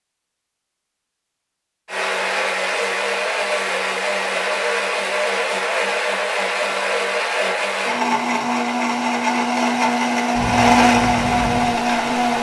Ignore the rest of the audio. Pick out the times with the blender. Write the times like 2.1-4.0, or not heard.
1.9-12.3.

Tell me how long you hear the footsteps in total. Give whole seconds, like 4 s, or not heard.
not heard.